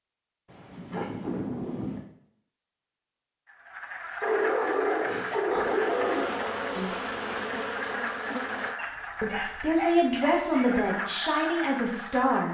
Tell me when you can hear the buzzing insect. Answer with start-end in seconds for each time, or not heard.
5.5-8.8.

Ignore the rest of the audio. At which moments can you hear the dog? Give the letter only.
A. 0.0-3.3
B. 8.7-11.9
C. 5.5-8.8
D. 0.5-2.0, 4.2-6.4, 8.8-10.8
D.